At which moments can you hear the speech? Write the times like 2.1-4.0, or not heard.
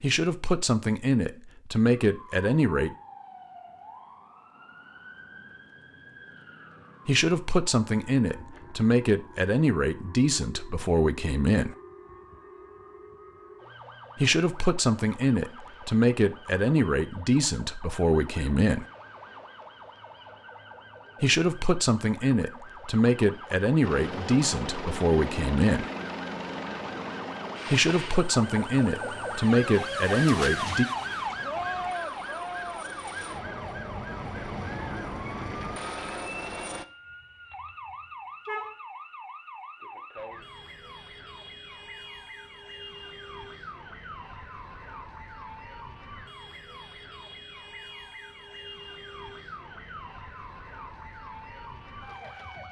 0.0-3.0, 7.0-11.8, 14.2-18.9, 21.2-25.9, 27.7-30.9.